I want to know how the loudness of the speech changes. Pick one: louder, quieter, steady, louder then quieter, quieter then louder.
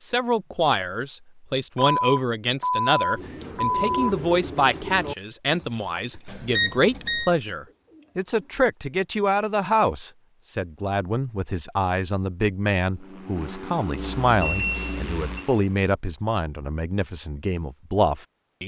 steady.